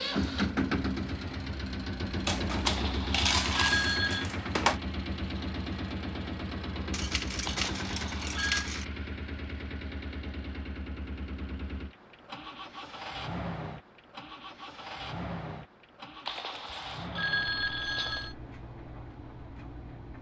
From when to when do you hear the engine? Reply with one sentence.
The engine can be heard from 0.0 to 20.1 s.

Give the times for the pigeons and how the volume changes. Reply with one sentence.
You can't hear the pigeons here.